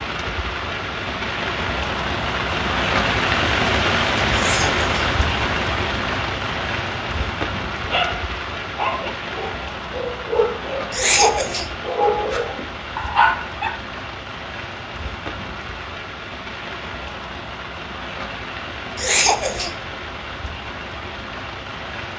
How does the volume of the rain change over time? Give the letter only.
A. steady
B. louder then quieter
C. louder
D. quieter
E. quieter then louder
D.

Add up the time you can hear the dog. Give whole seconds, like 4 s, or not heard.
6 s.